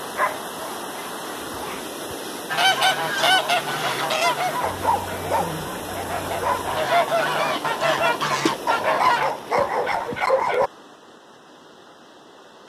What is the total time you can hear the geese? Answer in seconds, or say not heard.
7 s.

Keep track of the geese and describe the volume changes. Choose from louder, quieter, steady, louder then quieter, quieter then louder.
quieter then louder.